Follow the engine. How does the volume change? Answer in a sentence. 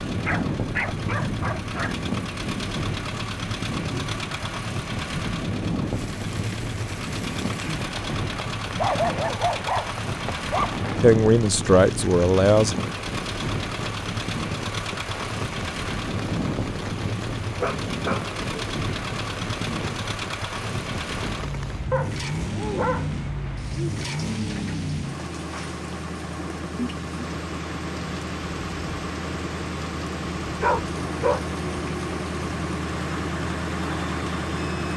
The loudness of the engine stays about the same.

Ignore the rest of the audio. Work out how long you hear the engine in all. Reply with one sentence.
The engine can be heard for 35 seconds in total.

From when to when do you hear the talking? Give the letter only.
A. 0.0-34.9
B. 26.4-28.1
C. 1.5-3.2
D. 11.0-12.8
D.